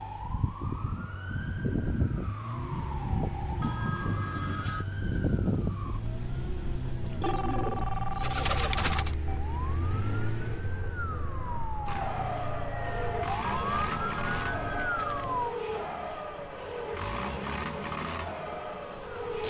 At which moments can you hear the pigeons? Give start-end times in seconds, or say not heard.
7.2-9.2.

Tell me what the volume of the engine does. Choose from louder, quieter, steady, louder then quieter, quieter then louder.
louder.